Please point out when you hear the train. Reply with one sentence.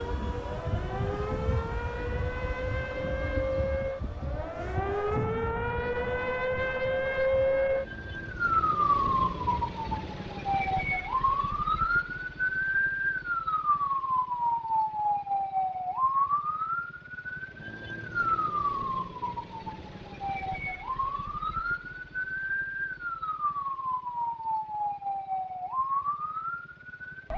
You can hear the train from 0.0 to 9.9 s.